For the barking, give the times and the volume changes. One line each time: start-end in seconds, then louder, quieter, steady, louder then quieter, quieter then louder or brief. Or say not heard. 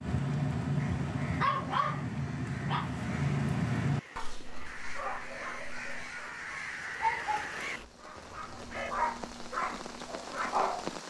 0.0-11.0 quieter then louder.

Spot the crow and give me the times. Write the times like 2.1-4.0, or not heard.
0.8-8.9.